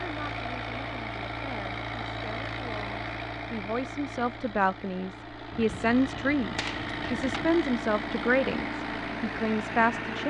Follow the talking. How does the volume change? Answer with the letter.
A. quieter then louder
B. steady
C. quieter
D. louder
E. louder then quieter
D.